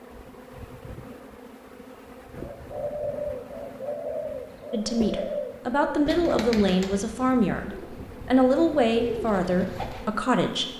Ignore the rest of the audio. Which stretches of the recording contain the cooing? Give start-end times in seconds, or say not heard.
2.3-10.1.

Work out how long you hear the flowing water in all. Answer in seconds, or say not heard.
not heard.